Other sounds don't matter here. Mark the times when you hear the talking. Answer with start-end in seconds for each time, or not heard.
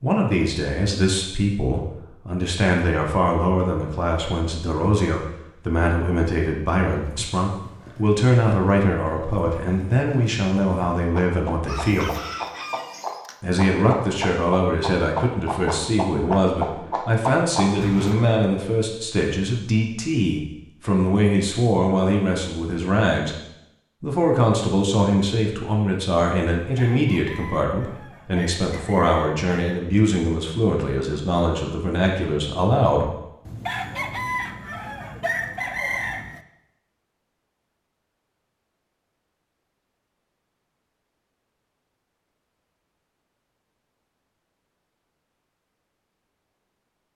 0.0-12.1, 13.4-23.4, 24.0-33.1.